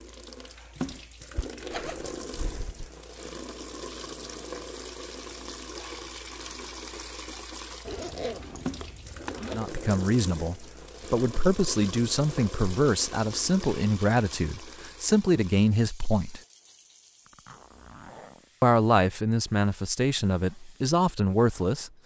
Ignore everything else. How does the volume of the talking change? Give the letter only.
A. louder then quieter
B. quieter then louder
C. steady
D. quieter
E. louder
C.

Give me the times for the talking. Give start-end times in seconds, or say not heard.
9.5-16.4, 18.6-21.9.